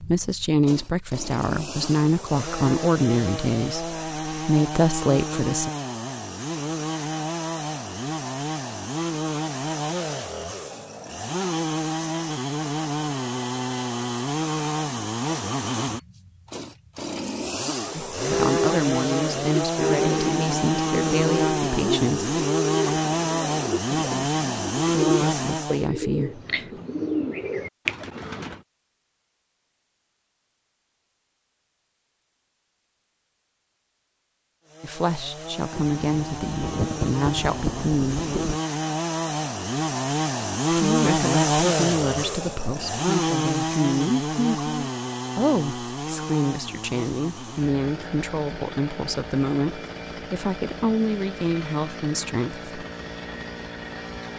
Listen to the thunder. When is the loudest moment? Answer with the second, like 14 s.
37 s.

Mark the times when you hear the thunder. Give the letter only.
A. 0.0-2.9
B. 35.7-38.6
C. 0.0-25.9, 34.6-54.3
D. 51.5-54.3
B.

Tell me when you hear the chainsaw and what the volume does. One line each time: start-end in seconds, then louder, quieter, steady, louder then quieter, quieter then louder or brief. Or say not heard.
0.0-25.9 louder
34.6-54.3 louder then quieter.